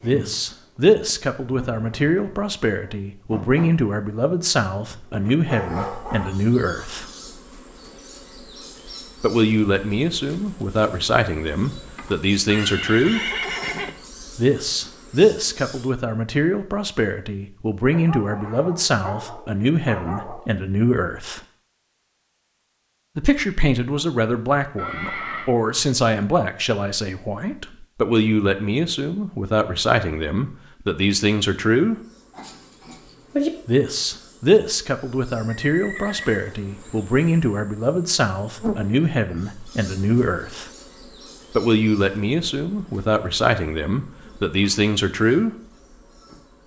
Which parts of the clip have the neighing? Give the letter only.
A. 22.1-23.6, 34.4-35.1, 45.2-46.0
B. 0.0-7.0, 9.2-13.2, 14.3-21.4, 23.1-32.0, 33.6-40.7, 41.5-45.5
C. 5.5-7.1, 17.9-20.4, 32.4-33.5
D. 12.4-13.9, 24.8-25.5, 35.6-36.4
D.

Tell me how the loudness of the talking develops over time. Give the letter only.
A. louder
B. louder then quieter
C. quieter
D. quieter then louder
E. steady
E.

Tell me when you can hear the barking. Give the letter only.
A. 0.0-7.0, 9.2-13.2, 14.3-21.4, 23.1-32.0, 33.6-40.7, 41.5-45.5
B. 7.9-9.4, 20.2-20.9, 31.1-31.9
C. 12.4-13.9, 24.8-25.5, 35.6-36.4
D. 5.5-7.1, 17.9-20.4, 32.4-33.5
D.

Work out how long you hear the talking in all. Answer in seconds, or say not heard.
38 s.